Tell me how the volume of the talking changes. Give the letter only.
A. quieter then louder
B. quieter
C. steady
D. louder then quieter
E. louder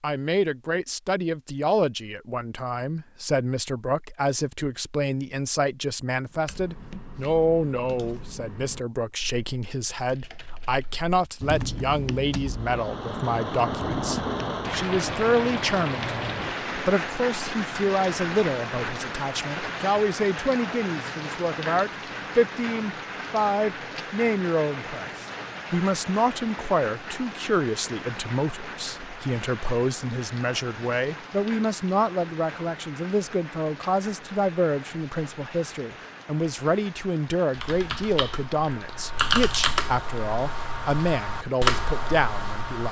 C.